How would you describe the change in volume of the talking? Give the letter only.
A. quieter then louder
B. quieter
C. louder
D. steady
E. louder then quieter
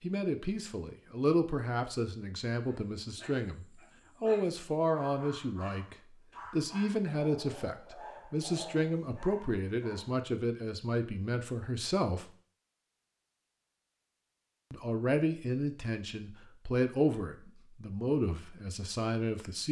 D.